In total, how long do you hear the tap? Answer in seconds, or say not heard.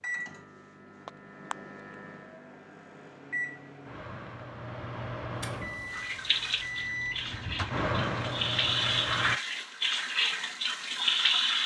6 s.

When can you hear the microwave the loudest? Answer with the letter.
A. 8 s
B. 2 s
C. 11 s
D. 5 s
A.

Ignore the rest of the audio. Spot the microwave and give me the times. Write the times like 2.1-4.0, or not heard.
0.0-9.4.